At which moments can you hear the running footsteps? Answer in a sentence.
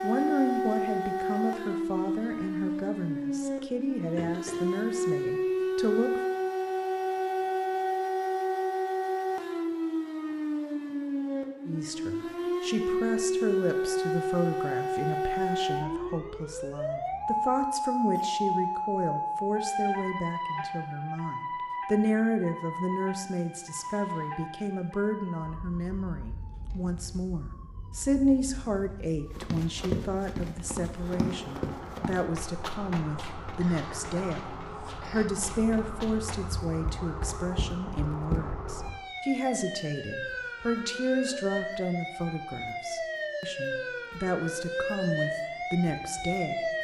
You can hear the running footsteps from 29.3 to 38.4 s.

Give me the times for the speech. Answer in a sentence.
You can hear the speech from 0.0 to 6.2 s and from 11.7 to 46.7 s.